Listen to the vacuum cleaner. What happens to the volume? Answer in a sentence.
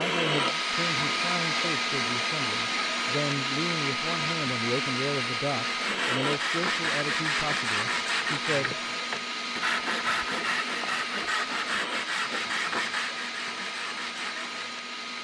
The volume of the vacuum cleaner goes down.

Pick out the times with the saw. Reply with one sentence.
The saw can be heard from 5.7 to 14.8 s.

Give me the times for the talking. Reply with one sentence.
The talking can be heard from 0.0 to 8.8 s.